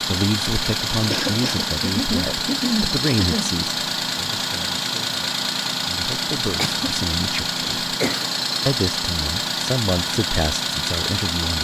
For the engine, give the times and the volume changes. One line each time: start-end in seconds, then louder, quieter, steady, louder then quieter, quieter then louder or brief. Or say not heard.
0.0-11.5 steady.